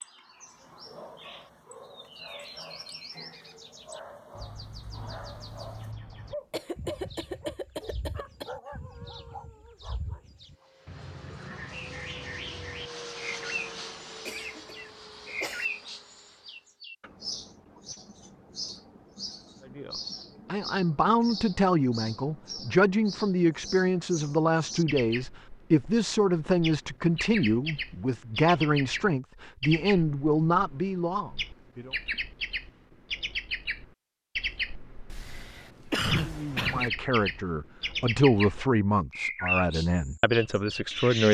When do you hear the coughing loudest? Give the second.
36 s.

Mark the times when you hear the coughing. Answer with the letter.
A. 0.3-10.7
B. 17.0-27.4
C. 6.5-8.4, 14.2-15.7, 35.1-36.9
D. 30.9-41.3
C.